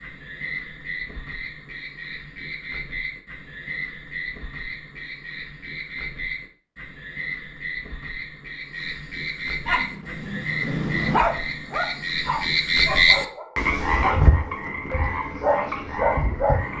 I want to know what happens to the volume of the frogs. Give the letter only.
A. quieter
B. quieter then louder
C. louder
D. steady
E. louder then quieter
C.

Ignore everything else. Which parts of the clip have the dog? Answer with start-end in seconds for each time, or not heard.
9.7-16.6.